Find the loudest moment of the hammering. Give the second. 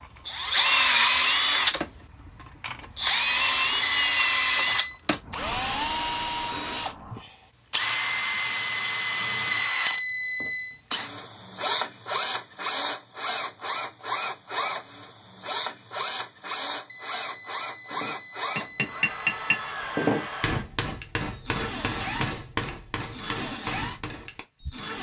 20 s.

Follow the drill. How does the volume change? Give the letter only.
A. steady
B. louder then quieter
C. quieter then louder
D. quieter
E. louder
D.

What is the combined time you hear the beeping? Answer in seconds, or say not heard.
5 s.